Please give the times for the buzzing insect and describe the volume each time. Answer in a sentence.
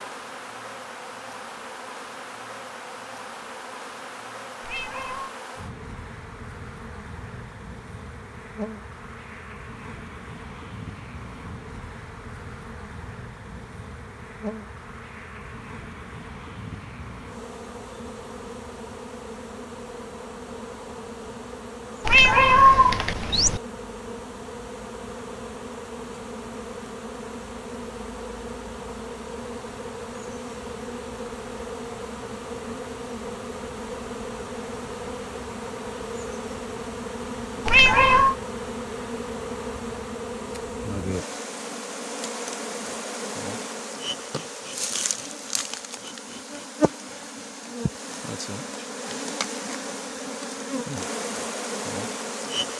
The buzzing insect can be heard from 0.0 to 52.7 s, getting louder.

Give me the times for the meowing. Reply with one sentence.
You can hear the meowing from 4.6 to 5.3 s, from 22.1 to 23.6 s and from 37.6 to 38.4 s.